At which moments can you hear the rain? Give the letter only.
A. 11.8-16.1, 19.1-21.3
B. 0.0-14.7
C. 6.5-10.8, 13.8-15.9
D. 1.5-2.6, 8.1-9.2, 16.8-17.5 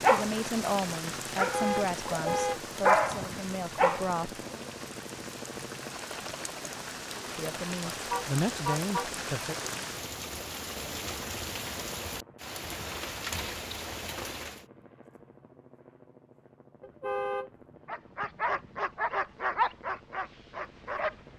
B.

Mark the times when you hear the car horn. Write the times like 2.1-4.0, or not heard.
1.5-2.6, 8.1-9.2, 16.8-17.5.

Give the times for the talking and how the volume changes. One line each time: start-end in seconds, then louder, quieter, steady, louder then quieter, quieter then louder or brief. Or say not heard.
0.1-4.4 quieter
7.3-9.6 brief.